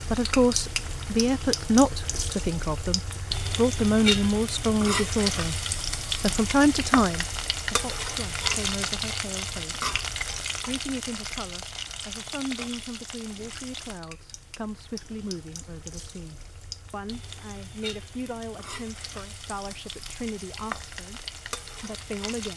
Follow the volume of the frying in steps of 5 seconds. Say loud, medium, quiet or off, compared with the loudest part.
loud, loud, medium, quiet, medium.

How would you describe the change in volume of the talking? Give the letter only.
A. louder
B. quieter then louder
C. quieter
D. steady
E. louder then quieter
C.